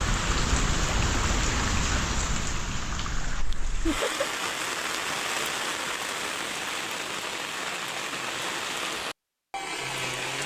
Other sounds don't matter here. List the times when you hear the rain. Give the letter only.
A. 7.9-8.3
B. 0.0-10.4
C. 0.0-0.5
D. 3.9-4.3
B.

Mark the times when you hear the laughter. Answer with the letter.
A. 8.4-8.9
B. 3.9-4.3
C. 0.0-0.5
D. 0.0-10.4
B.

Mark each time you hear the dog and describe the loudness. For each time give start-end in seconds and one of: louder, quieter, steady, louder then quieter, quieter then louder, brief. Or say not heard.
not heard.